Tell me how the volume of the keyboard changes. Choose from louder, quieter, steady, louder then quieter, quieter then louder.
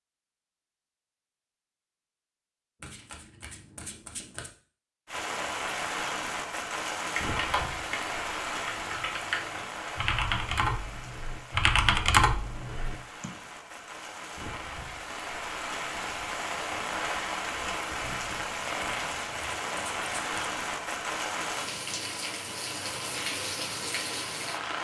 louder.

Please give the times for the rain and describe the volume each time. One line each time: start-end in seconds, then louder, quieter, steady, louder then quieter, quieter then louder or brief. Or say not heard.
5.0-24.7 quieter then louder.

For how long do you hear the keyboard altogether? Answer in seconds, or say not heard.
6 s.